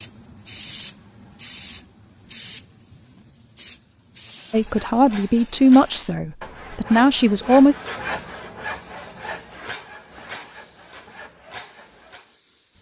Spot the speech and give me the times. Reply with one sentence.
You can hear the speech from 4.5 to 7.8 s.